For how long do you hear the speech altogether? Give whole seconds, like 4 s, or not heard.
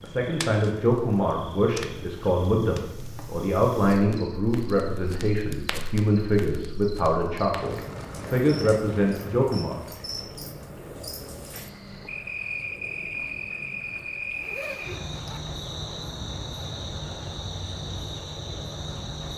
10 s.